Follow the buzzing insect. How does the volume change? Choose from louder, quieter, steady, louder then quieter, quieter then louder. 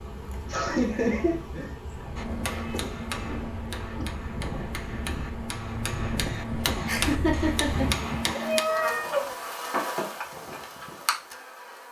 louder.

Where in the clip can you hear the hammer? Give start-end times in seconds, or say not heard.
2.1-8.7.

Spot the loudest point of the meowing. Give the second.
9 s.